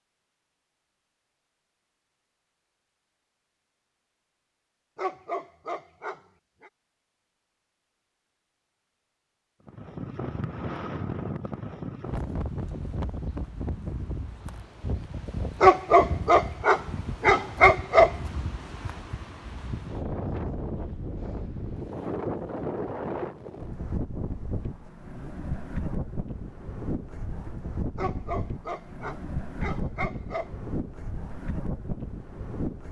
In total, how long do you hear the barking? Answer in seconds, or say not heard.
7 s.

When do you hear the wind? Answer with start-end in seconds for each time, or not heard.
9.7-32.8.